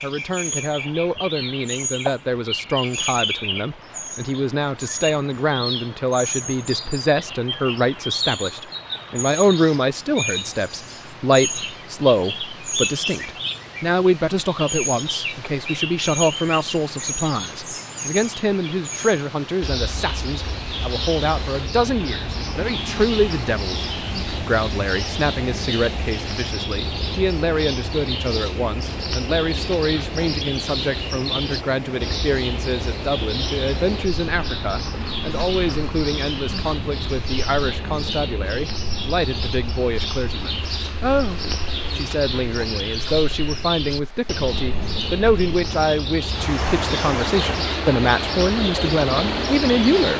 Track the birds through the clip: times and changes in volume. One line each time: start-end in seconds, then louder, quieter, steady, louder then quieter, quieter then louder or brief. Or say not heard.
0.0-50.1 steady.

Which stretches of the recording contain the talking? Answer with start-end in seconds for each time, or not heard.
0.0-23.9, 24.4-50.1.